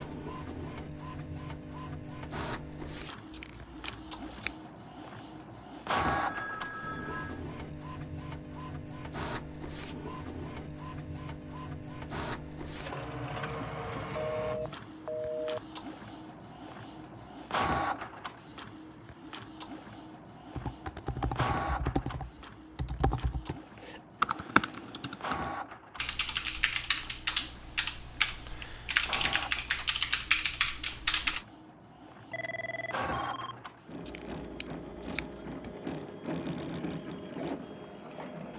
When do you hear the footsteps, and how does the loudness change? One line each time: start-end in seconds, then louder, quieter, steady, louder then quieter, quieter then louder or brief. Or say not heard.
not heard.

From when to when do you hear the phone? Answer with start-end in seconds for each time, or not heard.
6.0-7.5, 14.2-15.8, 32.3-33.6.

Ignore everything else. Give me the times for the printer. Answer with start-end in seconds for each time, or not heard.
0.0-38.5.